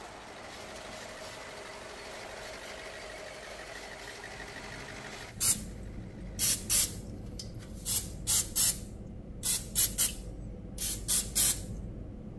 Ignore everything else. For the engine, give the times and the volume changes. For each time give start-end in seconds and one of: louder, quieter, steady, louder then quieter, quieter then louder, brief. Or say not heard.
0.0-6.8 quieter.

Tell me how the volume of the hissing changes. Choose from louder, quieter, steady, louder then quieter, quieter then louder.
louder.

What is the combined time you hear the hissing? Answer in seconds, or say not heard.
12 s.